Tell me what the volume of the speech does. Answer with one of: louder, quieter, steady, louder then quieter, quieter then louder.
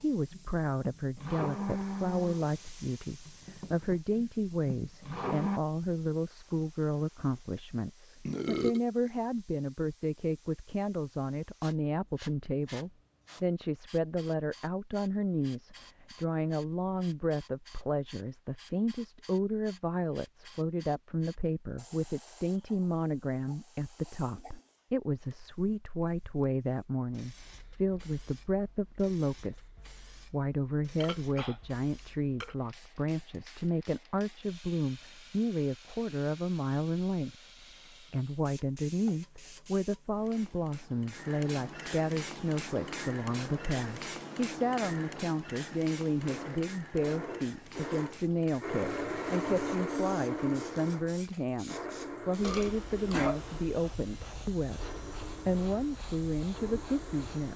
steady.